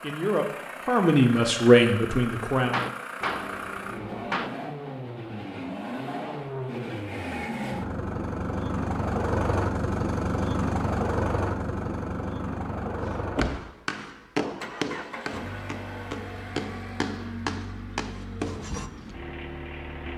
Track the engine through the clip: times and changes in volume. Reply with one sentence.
The engine can be heard from 0.0 to 20.1 s, getting louder then quieter.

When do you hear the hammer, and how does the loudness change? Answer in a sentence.
You can hear the hammer briefly from 2.6 to 4.5 s; and from 13.0 to 18.9 s, getting quieter then louder.